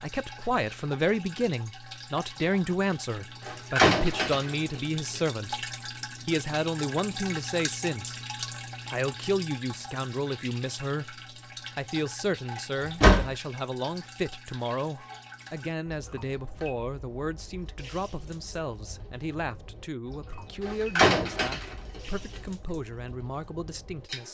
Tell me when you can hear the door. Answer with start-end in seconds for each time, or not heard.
3.5-4.8, 12.8-13.3, 20.6-21.8.